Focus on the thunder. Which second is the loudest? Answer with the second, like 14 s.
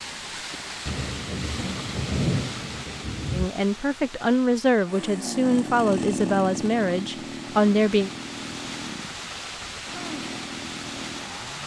2 s.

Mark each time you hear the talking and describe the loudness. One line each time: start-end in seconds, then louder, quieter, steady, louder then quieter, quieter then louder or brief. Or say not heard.
3.3-8.1 steady.